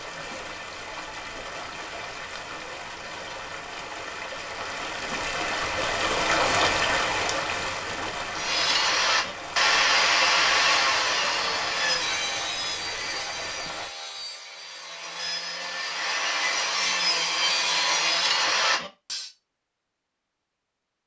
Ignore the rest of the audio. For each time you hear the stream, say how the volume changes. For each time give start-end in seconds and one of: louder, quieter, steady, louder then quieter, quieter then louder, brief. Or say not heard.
0.0-13.9 louder then quieter.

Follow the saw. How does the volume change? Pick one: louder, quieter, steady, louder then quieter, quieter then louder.
quieter then louder.